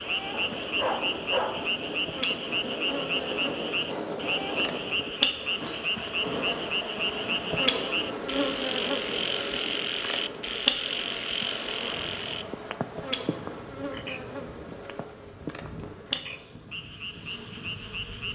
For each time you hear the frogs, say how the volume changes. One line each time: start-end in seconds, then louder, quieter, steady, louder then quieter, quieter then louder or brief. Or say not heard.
0.0-18.3 quieter.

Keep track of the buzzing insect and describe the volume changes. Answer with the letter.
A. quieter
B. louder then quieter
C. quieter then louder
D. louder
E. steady
B.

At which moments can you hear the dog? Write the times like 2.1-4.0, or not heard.
0.3-1.7.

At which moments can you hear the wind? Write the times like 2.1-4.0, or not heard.
0.0-18.3.